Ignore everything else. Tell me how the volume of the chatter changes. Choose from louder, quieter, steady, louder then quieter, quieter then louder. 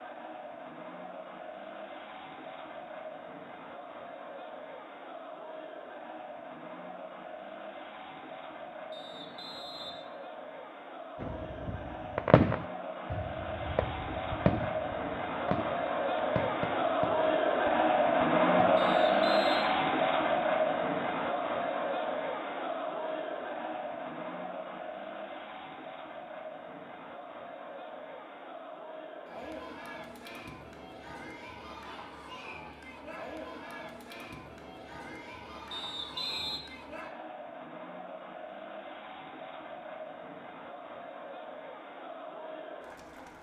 louder then quieter.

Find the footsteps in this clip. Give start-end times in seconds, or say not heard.
not heard.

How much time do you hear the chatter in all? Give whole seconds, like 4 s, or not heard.
43 s.